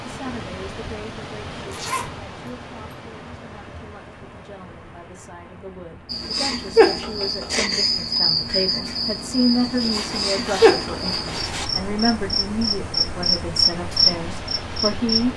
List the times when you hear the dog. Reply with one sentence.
The dog can't be heard in this clip.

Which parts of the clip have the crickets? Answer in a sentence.
The crickets can be heard from 6.0 to 15.3 s.